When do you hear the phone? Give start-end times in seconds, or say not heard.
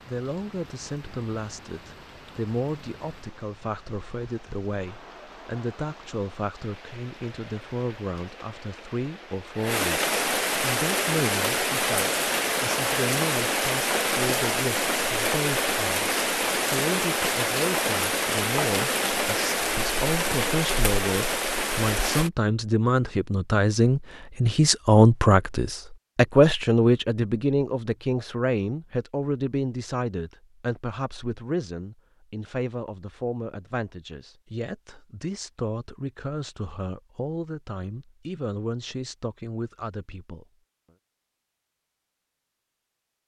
not heard.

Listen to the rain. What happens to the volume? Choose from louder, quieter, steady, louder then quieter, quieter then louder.
louder.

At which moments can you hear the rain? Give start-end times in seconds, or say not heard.
0.0-22.3.